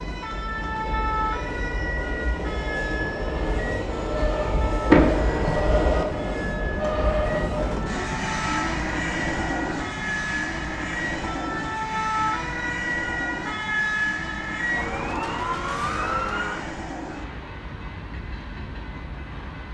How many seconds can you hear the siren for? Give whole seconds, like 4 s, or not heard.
17 s.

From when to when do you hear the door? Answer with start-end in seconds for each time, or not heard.
4.8-5.6.